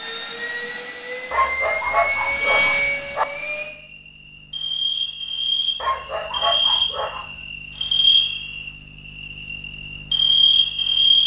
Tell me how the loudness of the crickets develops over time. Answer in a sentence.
The volume of the crickets goes up.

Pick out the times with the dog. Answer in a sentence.
You can hear the dog from 1.3 to 3.2 s and from 5.8 to 7.3 s.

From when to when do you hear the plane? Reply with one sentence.
The plane can be heard from 0.0 to 3.7 s.